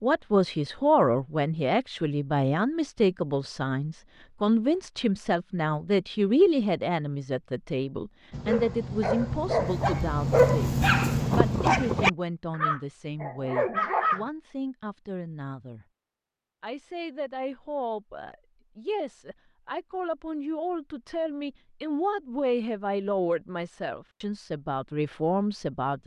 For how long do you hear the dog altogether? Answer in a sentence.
You can hear the dog for 6 seconds altogether.